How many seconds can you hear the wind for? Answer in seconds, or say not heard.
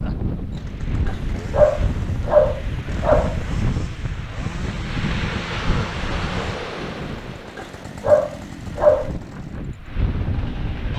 11 s.